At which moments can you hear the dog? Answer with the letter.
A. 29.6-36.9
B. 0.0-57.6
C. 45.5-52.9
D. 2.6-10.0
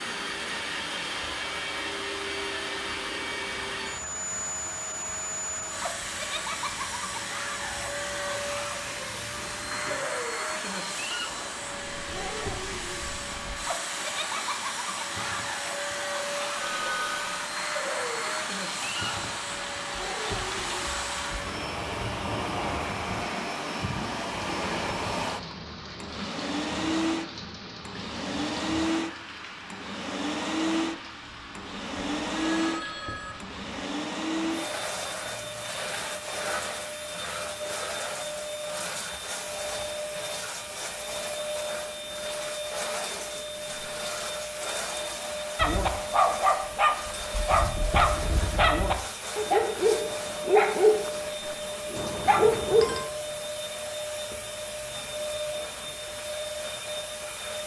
C.